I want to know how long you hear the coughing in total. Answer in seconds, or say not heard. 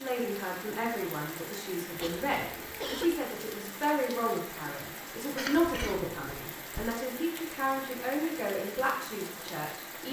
3 s.